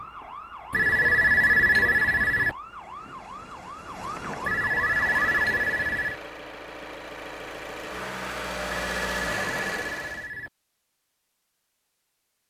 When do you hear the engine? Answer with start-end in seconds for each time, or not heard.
4.8-10.3.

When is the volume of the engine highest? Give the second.
9 s.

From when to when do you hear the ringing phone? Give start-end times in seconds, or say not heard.
0.7-2.5, 4.5-6.2, 8.7-10.5.